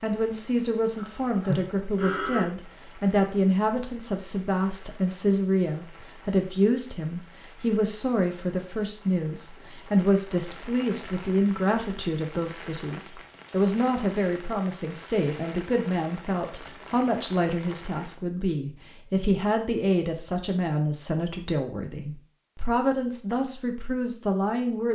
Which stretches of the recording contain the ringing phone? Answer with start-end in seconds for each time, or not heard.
0.9-2.5.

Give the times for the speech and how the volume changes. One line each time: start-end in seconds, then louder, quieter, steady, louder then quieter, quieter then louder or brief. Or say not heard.
0.0-24.8 steady.